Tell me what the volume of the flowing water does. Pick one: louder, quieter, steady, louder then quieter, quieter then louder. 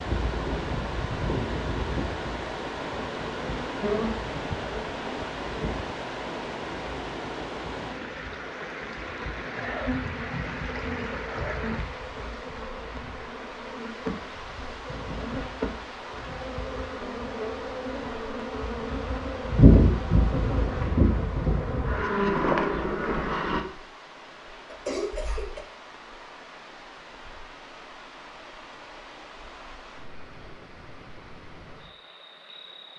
quieter.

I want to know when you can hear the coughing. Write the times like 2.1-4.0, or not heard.
24.6-25.6.